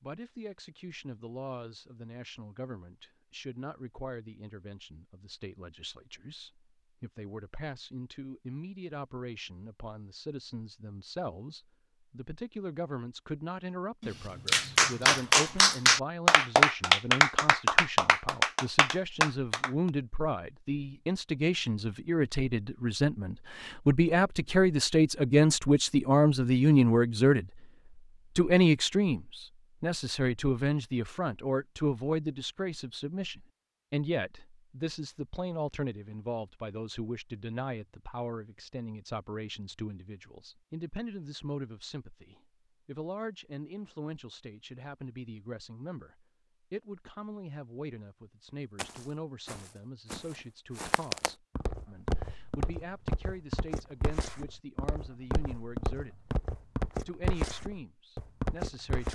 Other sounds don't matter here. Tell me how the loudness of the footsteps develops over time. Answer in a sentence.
The loudness of the footsteps goes up.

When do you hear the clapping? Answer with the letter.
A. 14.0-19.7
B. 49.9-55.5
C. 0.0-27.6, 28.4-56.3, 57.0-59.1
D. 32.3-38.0
A.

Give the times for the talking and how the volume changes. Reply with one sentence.
You can hear the talking from 0.0 to 27.6 s, getting louder; from 28.4 to 56.3 s, getting quieter; and briefly from 57.0 to 59.1 s.